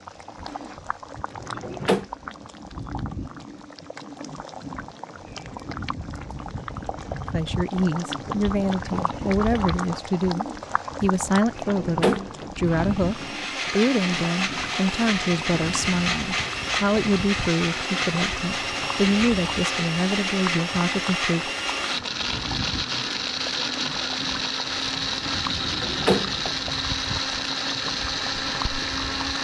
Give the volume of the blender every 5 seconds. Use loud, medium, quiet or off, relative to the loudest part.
off, off, loud, loud, loud, loud.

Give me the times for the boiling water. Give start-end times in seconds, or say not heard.
0.0-29.3.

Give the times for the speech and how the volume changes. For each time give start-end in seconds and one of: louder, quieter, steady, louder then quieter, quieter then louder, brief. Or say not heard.
7.3-21.5 steady.